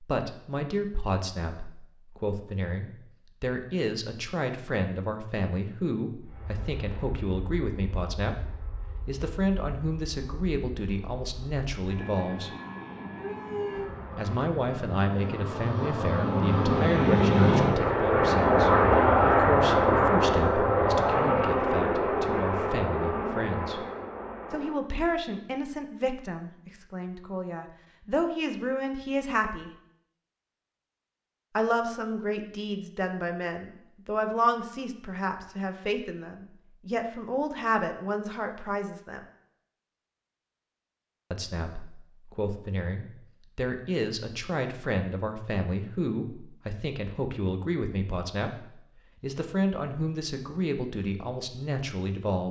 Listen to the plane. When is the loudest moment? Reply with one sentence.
The loudest moment of the plane is at 19 seconds.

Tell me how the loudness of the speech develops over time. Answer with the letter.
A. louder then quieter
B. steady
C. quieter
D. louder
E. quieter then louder
B.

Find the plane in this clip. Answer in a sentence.
The plane can be heard from 6.2 to 24.8 s.